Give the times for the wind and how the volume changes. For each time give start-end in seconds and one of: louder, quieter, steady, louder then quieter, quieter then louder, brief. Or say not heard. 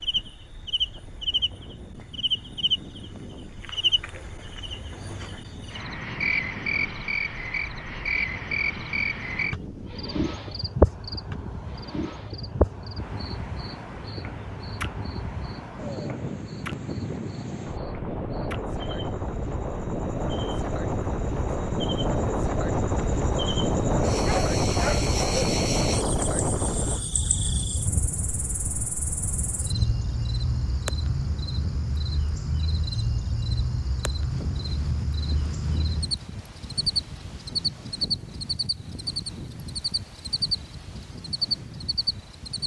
0.0-42.6 louder then quieter.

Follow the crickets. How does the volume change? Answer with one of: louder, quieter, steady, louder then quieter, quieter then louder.
quieter then louder.